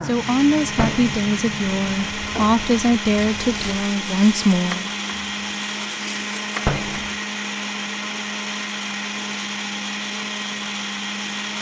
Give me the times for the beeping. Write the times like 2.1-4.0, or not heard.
not heard.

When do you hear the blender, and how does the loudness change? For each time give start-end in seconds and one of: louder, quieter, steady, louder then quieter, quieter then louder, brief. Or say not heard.
0.0-11.5 steady.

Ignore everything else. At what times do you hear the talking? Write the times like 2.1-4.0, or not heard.
0.0-4.9.